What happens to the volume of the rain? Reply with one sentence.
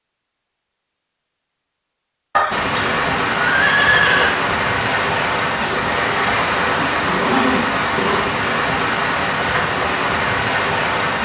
The volume of the rain stays about the same.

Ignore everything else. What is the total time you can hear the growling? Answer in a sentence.
The growling can be heard for 2 seconds in total.